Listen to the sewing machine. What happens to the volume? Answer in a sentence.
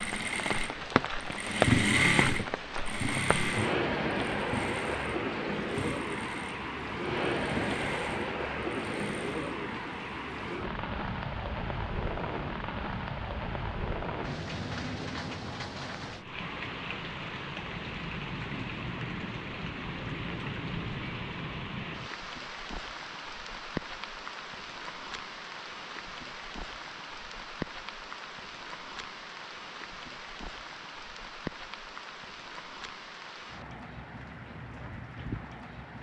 The volume of the sewing machine goes down.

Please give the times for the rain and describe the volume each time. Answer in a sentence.
You can hear the rain from 0.0 to 35.9 s, getting quieter.